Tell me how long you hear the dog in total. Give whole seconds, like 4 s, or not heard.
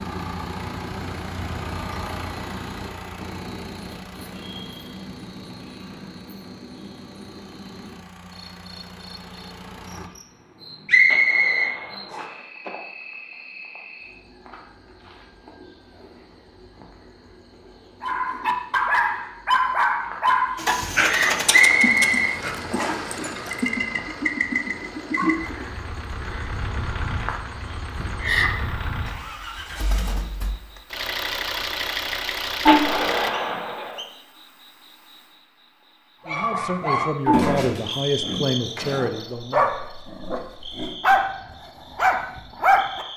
12 s.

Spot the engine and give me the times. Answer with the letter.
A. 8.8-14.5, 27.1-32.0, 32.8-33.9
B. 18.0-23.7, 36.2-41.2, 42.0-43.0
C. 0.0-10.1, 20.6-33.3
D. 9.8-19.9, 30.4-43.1
C.